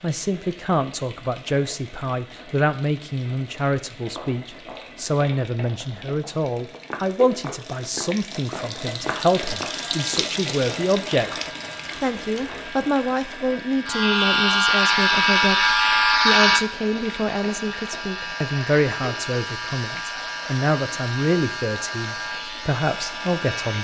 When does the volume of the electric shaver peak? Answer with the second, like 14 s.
16 s.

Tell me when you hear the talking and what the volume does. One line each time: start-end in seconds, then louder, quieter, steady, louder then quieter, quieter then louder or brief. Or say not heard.
0.0-23.8 steady.